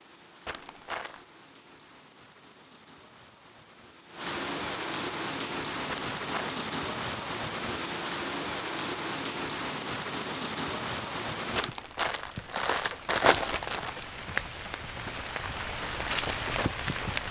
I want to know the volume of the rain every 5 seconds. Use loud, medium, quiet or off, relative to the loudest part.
medium, loud, loud, loud.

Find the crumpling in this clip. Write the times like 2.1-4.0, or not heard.
0.5-1.2, 5.8-6.6, 11.6-13.9.